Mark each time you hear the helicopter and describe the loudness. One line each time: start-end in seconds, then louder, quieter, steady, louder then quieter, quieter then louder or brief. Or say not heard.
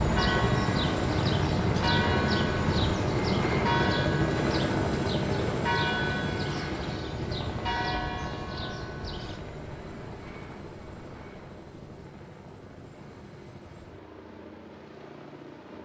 0.0-15.8 quieter.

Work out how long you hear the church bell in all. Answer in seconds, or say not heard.
9 s.